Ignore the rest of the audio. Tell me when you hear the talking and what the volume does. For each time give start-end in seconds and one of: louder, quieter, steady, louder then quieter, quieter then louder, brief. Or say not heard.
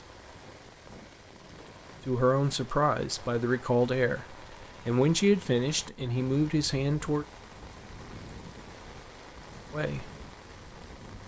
2.0-7.2 steady
9.7-10.1 brief.